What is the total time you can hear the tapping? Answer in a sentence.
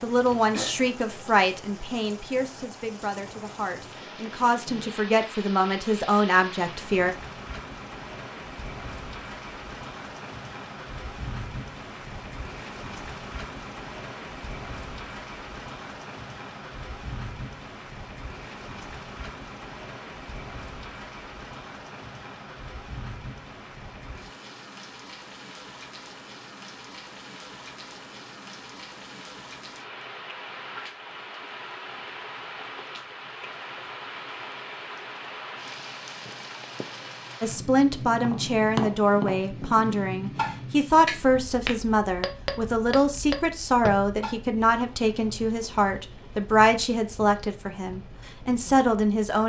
You can hear the tapping for 6 seconds altogether.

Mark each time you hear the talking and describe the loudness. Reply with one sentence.
The talking can be heard from 0.0 to 7.2 s, getting quieter then louder; and from 37.4 to 49.4 s, at a steady volume.